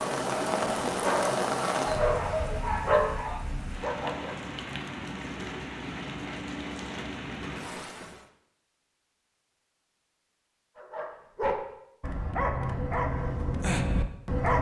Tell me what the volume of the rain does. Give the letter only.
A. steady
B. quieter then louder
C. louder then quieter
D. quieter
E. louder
D.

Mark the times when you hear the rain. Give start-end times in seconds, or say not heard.
0.0-8.2.